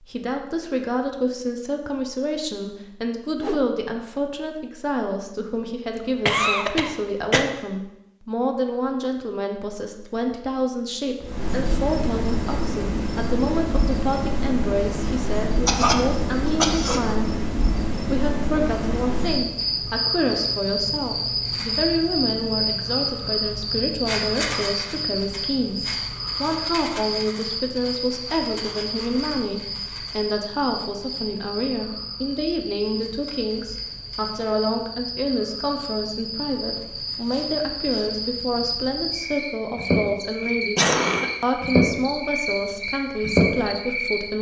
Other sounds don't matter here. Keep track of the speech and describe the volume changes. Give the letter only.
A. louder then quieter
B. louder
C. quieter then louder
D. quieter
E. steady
E.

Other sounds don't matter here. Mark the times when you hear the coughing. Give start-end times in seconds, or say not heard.
6.2-7.5, 15.7-17.0, 40.8-41.3.